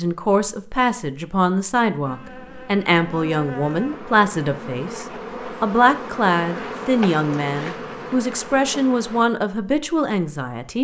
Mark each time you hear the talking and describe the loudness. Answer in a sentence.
The talking can be heard from 0.0 to 10.7 s, at a steady volume.